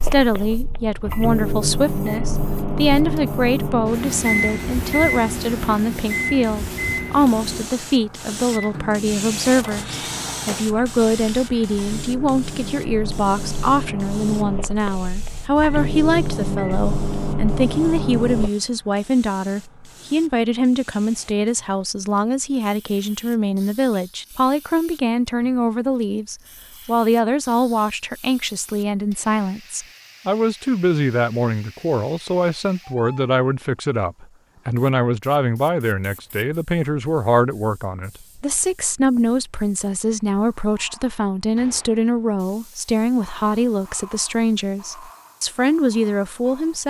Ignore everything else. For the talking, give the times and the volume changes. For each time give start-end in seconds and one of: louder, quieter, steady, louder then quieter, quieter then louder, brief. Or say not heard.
0.0-46.8 steady.